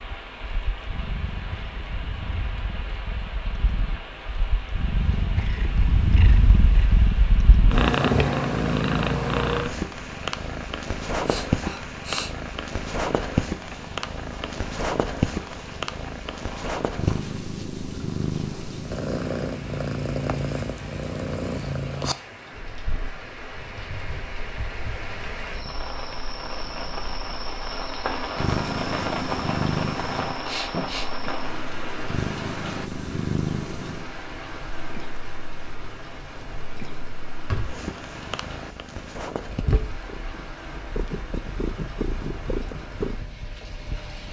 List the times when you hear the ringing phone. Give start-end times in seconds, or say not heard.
not heard.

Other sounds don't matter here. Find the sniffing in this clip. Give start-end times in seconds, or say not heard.
11.2-12.3, 30.4-31.1.